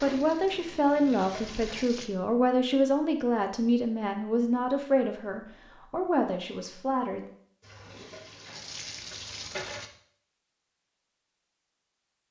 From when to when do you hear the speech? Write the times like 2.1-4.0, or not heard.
0.0-7.2.